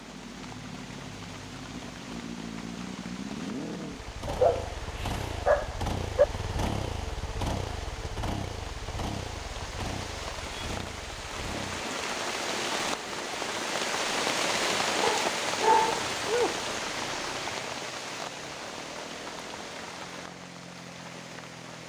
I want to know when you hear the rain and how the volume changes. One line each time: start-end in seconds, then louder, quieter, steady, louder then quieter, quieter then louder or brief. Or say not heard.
0.0-21.8 louder then quieter.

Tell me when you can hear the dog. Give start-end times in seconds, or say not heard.
4.2-6.2, 15.0-16.6.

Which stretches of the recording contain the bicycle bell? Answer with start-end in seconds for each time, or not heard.
not heard.